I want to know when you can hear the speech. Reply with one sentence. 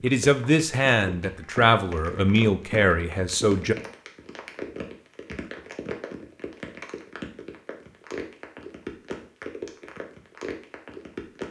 You can hear the speech from 0.0 to 3.8 s.